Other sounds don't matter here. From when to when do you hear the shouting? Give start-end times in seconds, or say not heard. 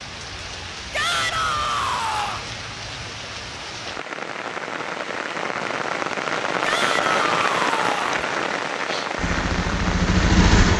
0.9-2.5, 6.6-8.2.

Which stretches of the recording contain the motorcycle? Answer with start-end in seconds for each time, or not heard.
9.2-10.7.